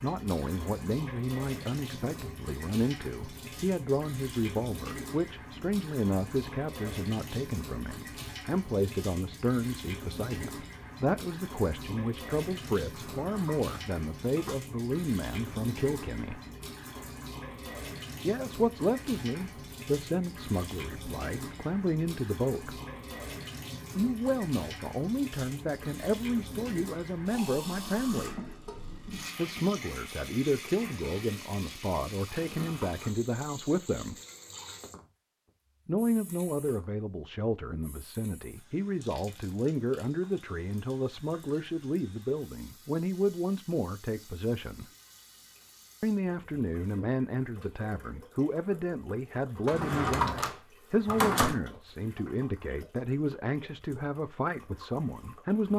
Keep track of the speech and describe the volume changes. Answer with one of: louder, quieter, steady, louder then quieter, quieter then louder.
steady.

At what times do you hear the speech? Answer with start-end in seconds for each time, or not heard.
0.0-16.4, 18.2-22.8, 23.9-28.4, 29.4-34.1, 35.9-44.9, 46.0-55.7.